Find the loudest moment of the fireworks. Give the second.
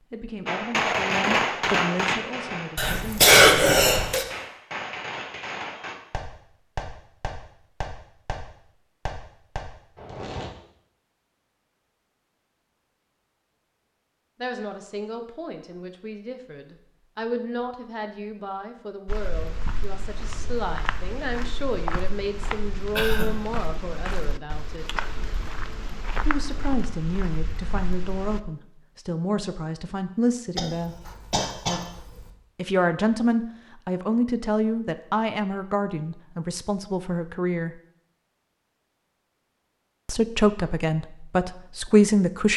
1 s.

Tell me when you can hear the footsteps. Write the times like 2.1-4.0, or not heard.
19.1-28.4.